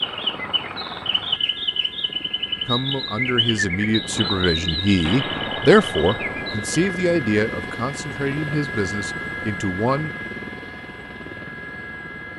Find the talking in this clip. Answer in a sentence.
You can hear the talking from 2.6 to 10.1 s.